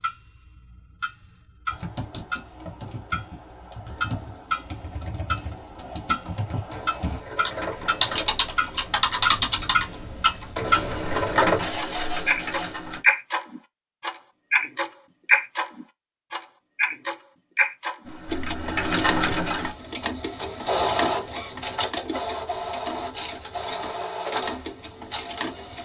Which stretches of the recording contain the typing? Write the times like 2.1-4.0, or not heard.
1.7-13.0, 18.1-19.8.